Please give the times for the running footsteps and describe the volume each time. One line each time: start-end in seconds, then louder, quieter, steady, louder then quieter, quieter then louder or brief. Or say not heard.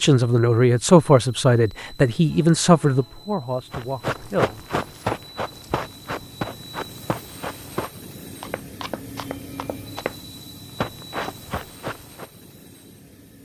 3.7-10.2 quieter
10.8-12.2 brief.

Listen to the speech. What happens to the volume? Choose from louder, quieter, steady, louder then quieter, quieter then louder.
quieter.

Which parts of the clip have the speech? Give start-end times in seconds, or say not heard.
0.0-4.6.